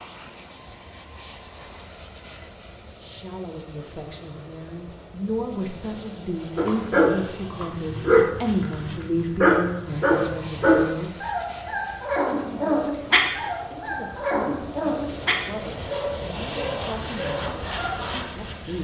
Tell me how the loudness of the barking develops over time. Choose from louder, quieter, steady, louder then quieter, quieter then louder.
quieter.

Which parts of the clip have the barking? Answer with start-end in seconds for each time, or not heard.
6.5-18.4.